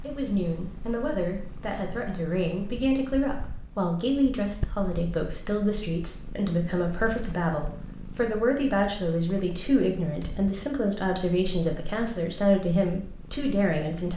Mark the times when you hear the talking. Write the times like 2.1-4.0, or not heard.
0.0-14.1.